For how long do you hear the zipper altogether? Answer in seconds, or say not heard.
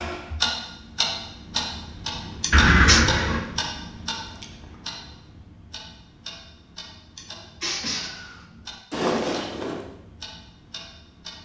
2 s.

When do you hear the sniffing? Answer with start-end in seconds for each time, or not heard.
2.4-3.0, 7.2-8.1.